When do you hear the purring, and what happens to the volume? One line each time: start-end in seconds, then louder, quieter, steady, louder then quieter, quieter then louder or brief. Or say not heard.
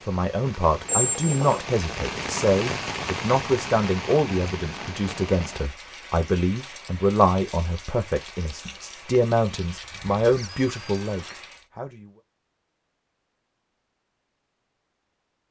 not heard.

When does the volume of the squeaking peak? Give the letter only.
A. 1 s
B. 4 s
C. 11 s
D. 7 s
A.